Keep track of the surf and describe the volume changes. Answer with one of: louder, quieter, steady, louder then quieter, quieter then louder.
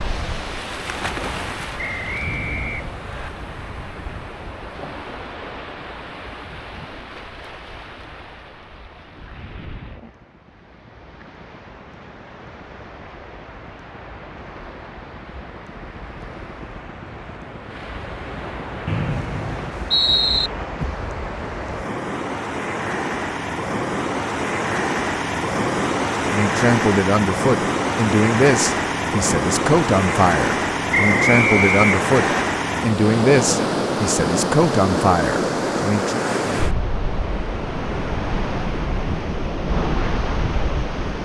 quieter then louder.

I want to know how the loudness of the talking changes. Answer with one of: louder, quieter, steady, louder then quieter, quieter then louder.
steady.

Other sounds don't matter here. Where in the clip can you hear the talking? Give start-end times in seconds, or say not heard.
26.2-36.2.